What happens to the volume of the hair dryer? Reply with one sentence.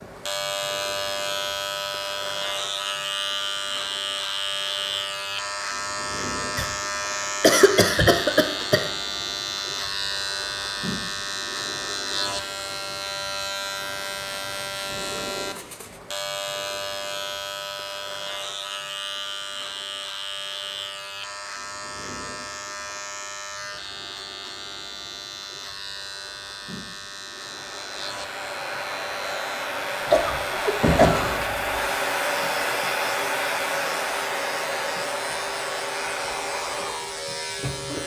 The loudness of the hair dryer goes up, then down.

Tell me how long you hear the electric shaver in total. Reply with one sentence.
You can hear the electric shaver for 38 seconds altogether.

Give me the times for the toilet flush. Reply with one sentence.
You can't hear the toilet flush here.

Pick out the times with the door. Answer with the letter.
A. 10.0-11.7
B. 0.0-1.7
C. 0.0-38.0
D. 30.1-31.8
D.